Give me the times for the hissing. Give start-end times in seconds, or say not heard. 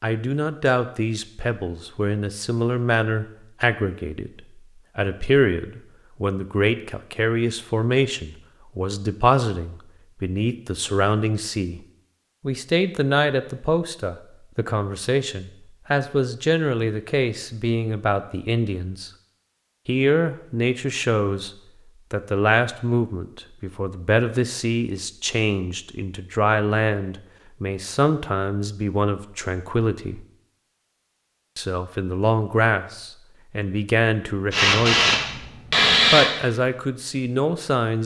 34.5-36.3.